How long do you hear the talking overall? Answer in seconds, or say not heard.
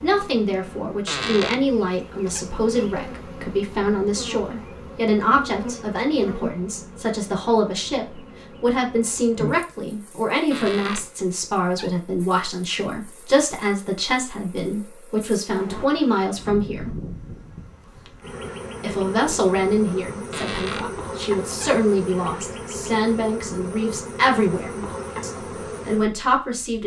25 s.